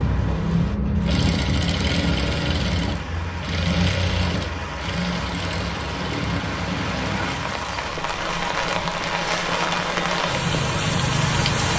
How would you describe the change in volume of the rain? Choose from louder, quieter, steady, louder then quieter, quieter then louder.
louder.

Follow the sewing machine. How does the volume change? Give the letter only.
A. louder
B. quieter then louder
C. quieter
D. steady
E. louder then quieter
C.